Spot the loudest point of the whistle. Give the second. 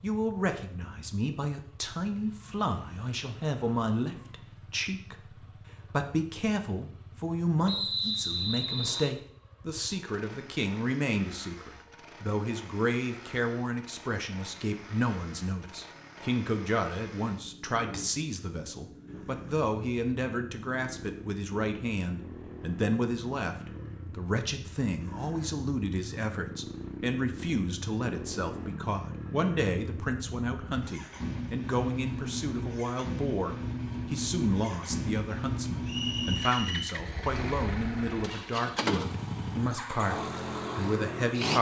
8 s.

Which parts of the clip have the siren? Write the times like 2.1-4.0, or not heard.
not heard.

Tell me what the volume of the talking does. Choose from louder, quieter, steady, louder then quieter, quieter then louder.
steady.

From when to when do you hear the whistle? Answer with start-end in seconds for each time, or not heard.
7.7-9.1, 35.9-36.9.